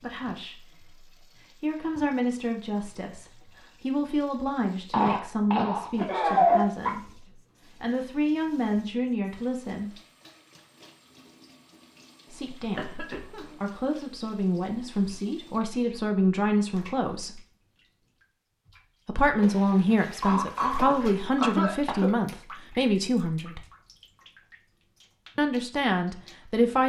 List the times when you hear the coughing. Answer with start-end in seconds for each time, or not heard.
4.9-6.9, 12.8-13.4, 20.2-22.1.